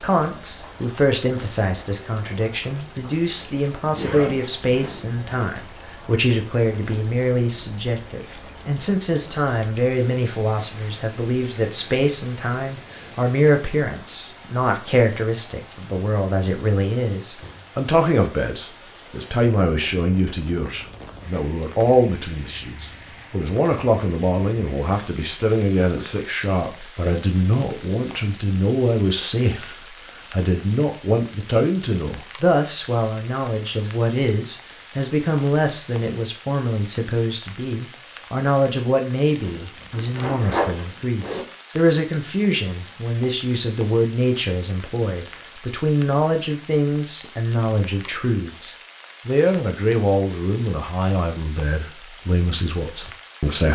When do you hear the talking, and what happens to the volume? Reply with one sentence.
The talking can be heard from 0.0 to 53.7 s, at a steady volume.